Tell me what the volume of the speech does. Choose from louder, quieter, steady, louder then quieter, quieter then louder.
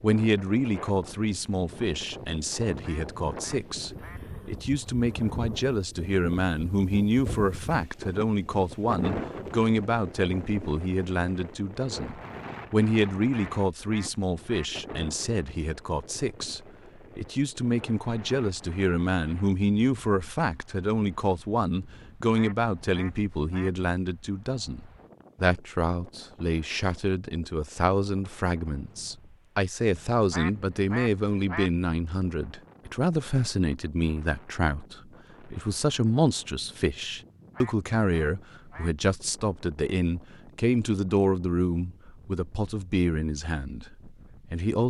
steady.